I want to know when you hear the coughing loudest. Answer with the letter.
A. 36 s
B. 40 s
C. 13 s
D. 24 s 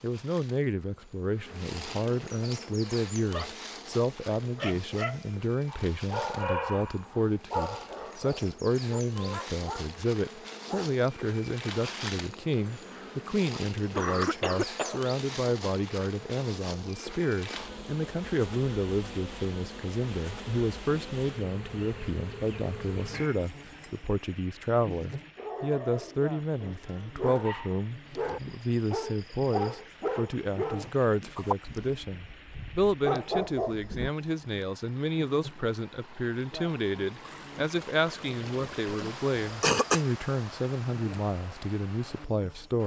B.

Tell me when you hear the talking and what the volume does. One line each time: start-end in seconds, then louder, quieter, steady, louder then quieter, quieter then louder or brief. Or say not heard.
0.0-42.8 steady.